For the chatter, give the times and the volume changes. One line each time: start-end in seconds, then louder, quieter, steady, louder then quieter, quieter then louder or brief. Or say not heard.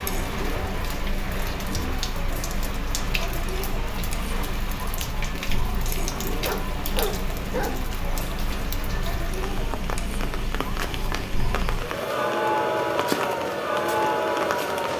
0.0-14.9 louder.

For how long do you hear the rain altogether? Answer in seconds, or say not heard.
15 s.